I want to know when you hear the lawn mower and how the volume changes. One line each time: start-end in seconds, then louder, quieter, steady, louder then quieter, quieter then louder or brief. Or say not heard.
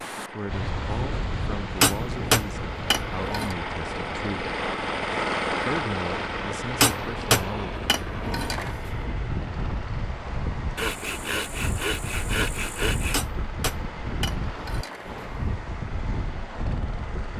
0.0-17.3 louder then quieter.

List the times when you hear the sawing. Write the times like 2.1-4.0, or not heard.
10.8-13.2.